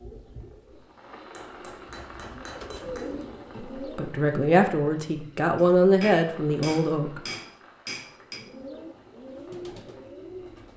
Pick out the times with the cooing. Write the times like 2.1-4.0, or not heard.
0.0-4.2, 8.3-10.7.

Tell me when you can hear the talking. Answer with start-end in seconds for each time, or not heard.
3.8-7.2.